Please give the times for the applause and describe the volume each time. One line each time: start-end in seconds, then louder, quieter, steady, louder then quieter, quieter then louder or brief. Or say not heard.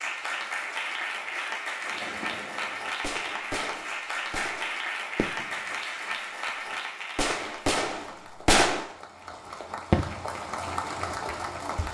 0.0-11.8 quieter then louder.